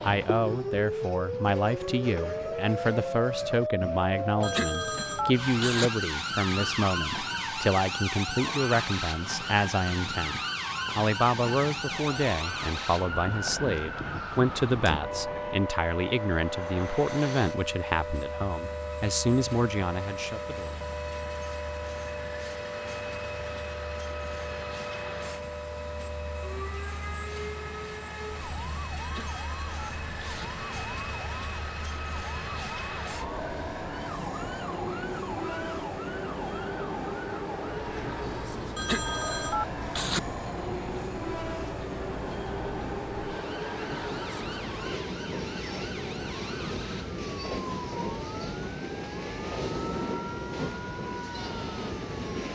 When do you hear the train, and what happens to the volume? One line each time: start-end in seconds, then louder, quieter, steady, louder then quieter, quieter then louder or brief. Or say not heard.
0.0-52.5 louder.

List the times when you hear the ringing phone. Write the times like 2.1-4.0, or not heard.
4.4-5.9, 29.0-30.4, 38.8-40.2.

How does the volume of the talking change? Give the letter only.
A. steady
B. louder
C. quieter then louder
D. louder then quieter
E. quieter
A.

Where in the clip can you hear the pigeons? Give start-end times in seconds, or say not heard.
not heard.